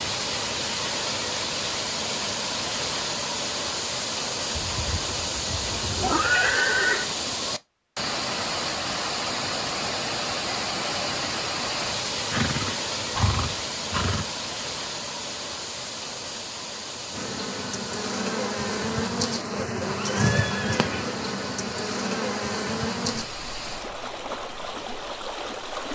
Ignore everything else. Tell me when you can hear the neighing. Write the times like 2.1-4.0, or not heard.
4.5-7.1, 12.3-14.3, 19.9-21.2.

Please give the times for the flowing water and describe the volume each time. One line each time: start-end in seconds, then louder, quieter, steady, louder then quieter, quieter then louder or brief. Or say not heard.
0.0-25.9 quieter.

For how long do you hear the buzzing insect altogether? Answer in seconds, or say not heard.
9 s.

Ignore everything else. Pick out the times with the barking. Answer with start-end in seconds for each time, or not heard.
not heard.